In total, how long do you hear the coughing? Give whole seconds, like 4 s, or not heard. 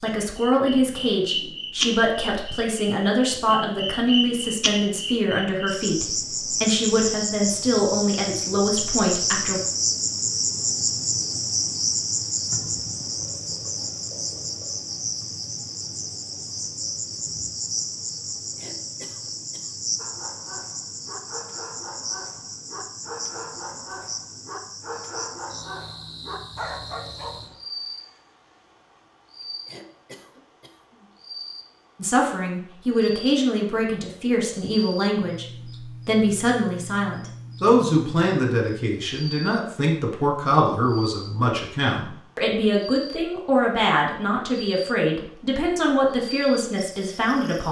3 s.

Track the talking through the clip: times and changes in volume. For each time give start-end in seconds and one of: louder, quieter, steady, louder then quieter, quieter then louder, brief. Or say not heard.
0.0-9.6 steady
32.0-47.6 steady.